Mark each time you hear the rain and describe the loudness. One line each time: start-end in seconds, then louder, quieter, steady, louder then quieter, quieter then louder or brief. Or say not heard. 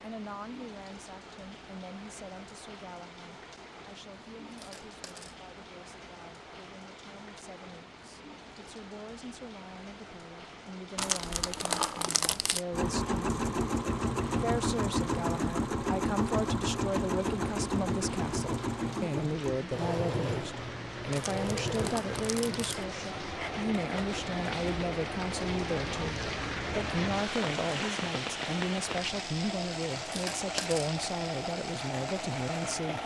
0.0-33.0 louder.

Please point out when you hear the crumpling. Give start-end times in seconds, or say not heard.
10.9-12.7, 21.1-22.9.